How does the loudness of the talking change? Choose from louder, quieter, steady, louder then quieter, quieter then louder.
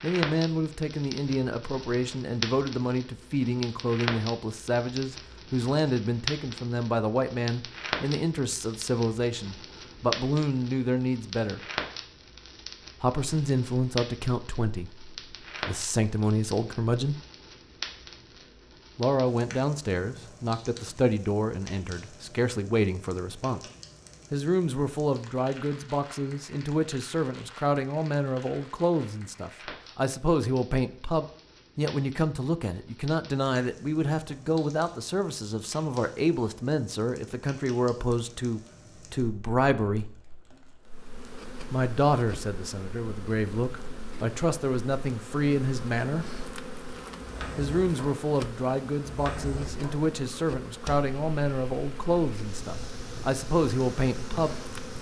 steady.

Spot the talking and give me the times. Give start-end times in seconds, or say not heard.
0.0-11.6, 13.0-17.1, 18.9-23.6, 24.3-40.0, 41.7-46.2, 47.5-54.5.